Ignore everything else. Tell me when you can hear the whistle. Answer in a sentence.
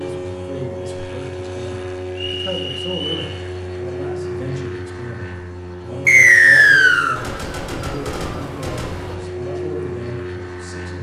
The whistle can be heard from 2.1 to 3.3 s and from 6.0 to 7.2 s.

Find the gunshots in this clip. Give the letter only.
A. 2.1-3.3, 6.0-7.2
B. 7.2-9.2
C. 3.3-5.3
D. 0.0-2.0
B.